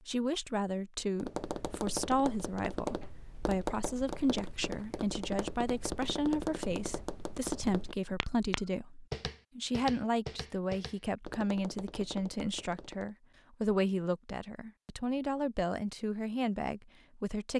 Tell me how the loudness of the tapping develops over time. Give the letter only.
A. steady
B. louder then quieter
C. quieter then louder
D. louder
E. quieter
E.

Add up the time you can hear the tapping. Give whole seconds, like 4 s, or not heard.
12 s.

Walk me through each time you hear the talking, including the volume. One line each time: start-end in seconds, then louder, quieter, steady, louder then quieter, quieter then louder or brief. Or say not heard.
0.1-17.5 steady.